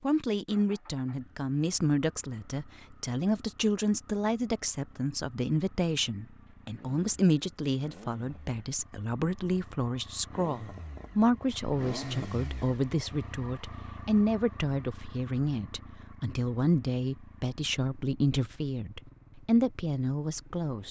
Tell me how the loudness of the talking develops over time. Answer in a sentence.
The loudness of the talking stays about the same.